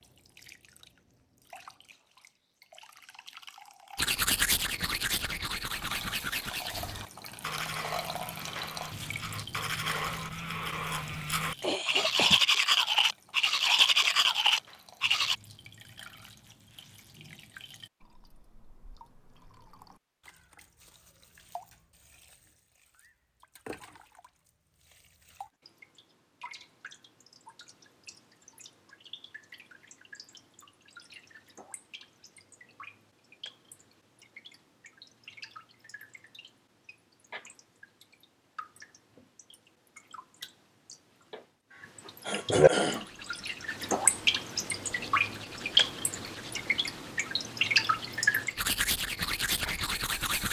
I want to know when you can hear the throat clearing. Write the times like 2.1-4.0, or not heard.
11.6-12.4, 41.7-43.0.